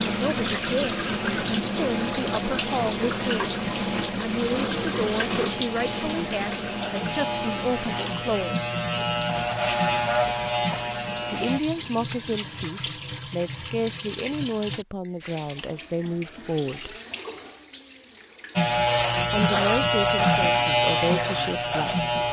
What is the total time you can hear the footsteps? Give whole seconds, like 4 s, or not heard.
not heard.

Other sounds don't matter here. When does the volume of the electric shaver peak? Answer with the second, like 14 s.
20 s.